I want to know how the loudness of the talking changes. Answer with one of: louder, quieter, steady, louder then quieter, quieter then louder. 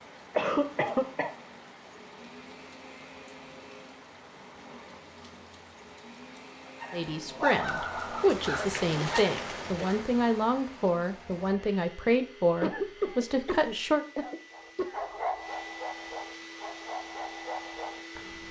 steady.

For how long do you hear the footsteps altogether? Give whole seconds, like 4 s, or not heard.
not heard.